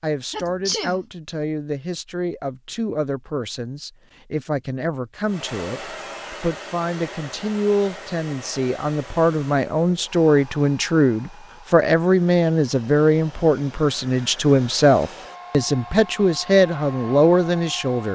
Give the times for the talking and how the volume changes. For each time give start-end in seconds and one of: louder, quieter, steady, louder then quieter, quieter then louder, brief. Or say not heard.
0.0-18.1 louder.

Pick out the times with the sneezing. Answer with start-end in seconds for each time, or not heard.
0.3-1.0.